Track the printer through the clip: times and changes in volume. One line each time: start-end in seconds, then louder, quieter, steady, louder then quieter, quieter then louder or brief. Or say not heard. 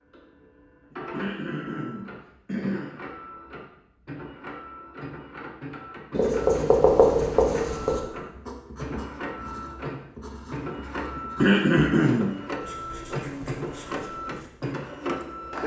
0.0-15.6 louder.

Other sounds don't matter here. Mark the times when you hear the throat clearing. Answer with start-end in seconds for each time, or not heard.
0.9-3.0, 11.2-12.3.